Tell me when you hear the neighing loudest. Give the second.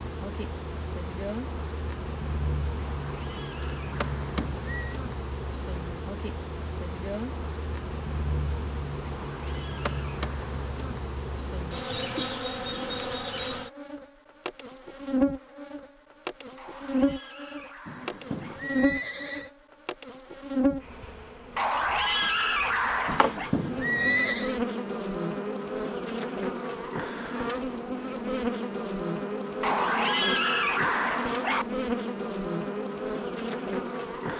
24 s.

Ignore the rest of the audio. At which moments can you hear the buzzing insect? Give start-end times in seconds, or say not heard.
0.0-34.3.